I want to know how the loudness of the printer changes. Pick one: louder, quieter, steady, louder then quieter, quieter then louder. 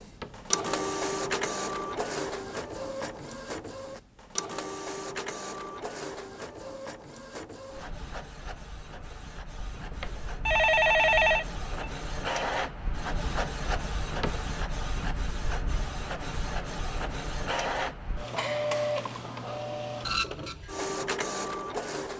quieter then louder.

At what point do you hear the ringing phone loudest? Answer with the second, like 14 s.
11 s.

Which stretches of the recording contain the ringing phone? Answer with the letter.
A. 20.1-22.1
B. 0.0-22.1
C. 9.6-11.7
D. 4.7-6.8
C.